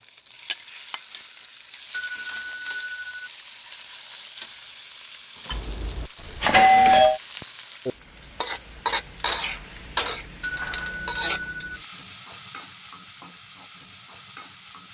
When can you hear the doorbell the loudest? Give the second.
7 s.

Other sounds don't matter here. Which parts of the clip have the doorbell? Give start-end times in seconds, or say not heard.
1.9-3.2, 5.5-7.2, 10.4-11.8.